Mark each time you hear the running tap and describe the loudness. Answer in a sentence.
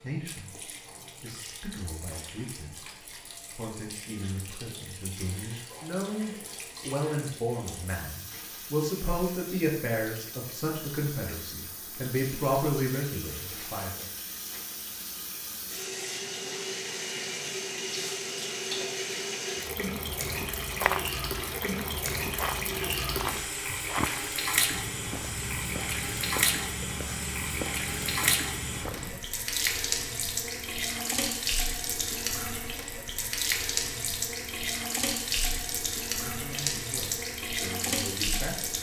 The running tap can be heard from 0.0 to 38.7 s, getting louder.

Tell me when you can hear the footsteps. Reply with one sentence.
You can hear the footsteps from 20.6 to 29.3 s.